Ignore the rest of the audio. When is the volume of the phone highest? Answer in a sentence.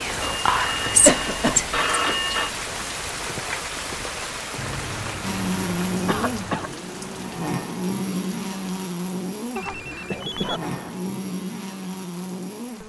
The loudest moment of the phone is at 2 seconds.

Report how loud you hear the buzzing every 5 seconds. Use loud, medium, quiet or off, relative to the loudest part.
off, loud, loud.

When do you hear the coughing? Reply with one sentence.
The coughing can be heard from 1.1 to 1.6 s, from 6.0 to 6.7 s and from 9.7 to 10.9 s.